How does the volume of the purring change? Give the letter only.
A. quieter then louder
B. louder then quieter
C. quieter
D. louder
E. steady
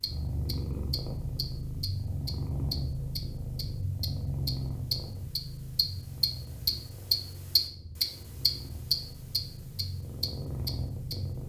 A.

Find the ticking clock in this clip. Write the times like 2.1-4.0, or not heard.
0.0-11.4.